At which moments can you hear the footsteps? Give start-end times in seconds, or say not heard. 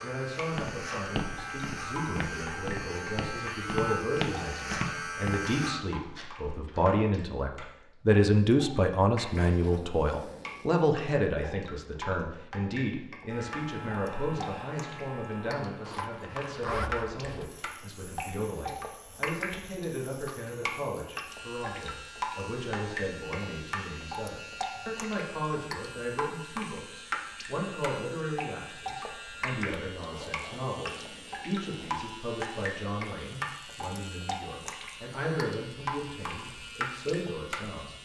0.5-7.0.